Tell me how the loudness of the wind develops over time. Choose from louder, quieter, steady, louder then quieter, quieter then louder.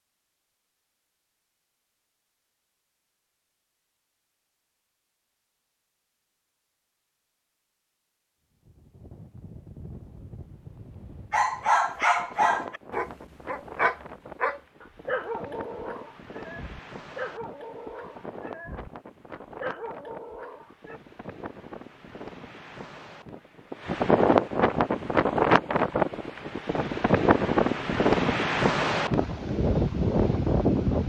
louder.